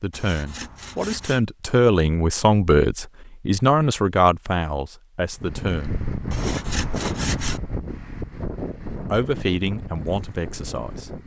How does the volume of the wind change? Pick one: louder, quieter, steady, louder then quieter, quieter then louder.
quieter.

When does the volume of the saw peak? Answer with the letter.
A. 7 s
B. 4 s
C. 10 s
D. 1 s
A.